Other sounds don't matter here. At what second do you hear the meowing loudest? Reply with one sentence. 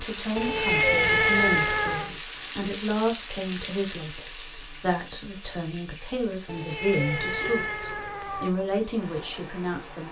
The volume of the meowing peaks at 1 second.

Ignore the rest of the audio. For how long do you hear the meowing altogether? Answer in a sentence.
You can hear the meowing for 4 seconds altogether.